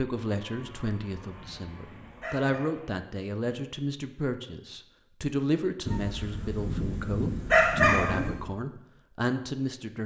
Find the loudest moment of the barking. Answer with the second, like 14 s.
8 s.